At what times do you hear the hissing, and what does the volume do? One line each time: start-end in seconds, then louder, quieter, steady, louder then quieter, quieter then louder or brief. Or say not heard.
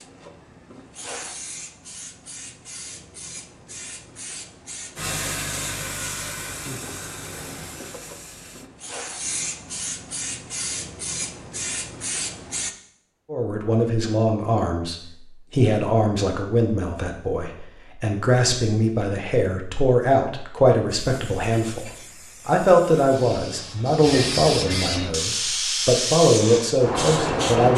0.0-12.8 louder
21.1-27.7 louder.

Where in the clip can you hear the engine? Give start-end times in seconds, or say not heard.
5.0-8.7.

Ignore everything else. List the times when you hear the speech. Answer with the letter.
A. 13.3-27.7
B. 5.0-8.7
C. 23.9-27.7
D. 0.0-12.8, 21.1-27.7
A.